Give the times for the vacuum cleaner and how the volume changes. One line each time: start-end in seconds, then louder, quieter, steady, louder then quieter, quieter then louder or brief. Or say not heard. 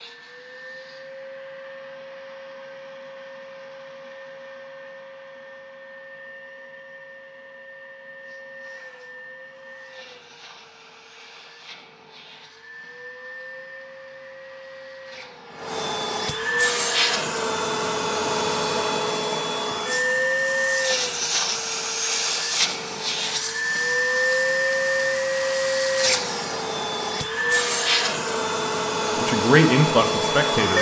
0.0-30.7 louder.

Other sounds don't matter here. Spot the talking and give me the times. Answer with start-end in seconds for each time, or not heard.
29.1-30.7.